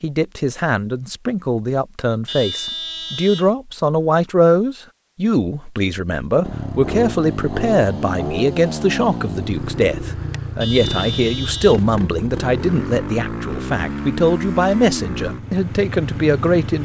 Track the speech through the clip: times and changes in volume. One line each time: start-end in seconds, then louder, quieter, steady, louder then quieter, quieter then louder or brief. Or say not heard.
0.0-16.8 steady.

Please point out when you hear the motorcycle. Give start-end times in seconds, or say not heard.
6.4-16.8.